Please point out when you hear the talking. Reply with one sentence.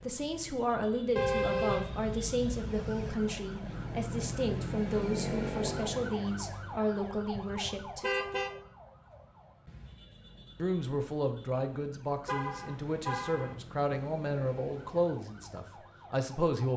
The talking can be heard from 0.0 to 8.1 s and from 10.6 to 16.7 s.